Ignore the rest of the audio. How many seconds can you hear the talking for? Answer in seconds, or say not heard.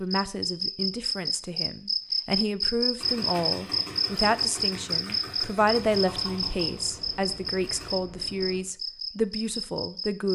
10 s.